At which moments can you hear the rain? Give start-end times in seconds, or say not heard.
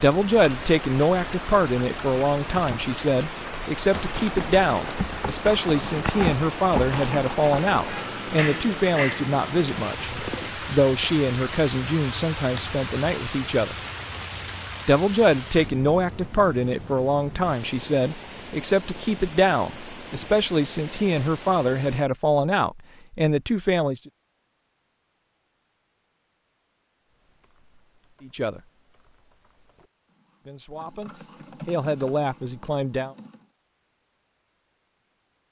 0.0-22.1.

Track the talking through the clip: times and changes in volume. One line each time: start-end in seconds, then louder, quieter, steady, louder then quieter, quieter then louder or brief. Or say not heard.
0.0-13.8 steady
14.8-24.0 steady
28.2-28.6 brief
30.4-33.1 brief.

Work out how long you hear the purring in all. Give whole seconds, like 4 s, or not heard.
not heard.